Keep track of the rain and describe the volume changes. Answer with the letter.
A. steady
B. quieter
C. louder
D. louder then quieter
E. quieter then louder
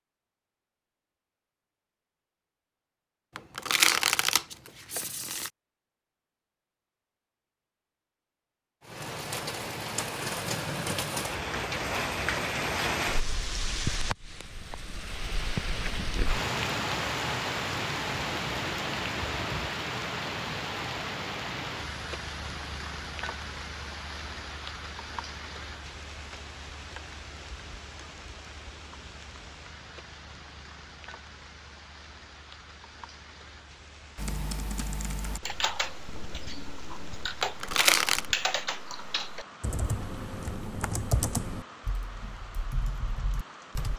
B.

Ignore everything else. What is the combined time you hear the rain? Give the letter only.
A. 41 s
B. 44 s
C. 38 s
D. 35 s
D.